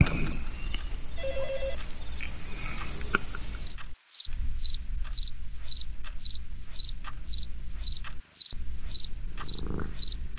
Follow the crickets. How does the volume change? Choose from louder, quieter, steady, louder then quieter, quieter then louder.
louder.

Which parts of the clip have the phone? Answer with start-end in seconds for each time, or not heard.
1.1-1.8.